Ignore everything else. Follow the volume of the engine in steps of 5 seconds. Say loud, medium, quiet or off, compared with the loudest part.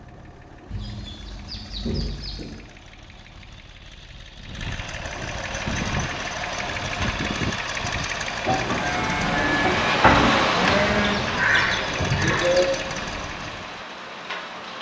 quiet, loud, loud.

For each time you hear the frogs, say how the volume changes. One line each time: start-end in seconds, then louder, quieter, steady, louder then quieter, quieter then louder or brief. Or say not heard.
not heard.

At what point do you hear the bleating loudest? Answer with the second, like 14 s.
10 s.